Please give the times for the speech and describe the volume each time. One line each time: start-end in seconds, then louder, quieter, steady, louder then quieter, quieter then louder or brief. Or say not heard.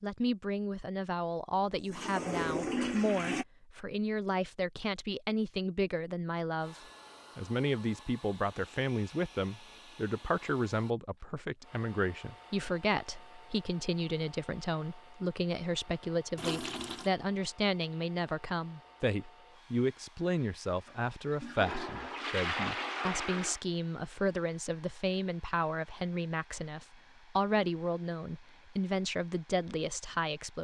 0.0-30.6 steady.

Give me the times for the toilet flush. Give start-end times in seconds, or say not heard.
1.6-3.5, 16.4-17.1, 20.9-23.6.